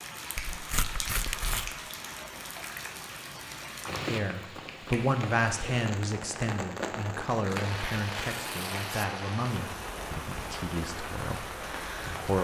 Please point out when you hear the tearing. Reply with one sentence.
You can hear the tearing from 0.5 to 1.8 s and from 7.6 to 9.1 s.